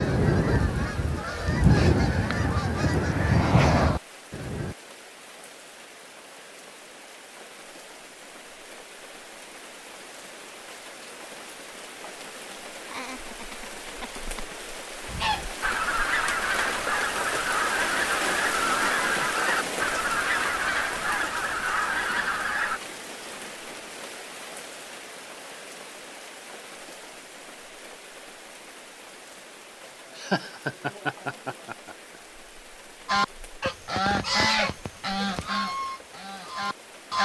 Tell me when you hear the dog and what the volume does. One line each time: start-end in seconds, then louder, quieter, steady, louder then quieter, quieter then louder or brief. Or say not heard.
not heard.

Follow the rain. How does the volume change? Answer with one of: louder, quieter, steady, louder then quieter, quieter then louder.
louder then quieter.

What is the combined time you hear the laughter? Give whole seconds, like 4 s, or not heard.
4 s.